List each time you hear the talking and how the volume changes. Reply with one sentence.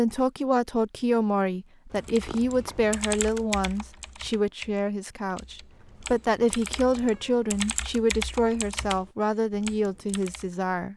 You can hear the talking from 0.0 to 10.9 s, at a steady volume.